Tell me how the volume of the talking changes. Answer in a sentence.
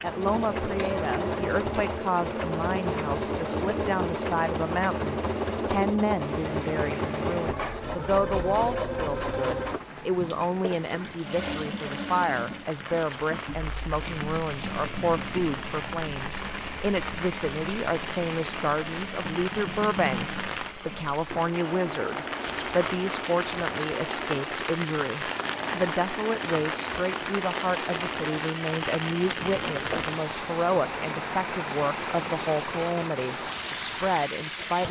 The loudness of the talking stays about the same.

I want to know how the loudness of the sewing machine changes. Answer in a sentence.
The volume of the sewing machine goes down.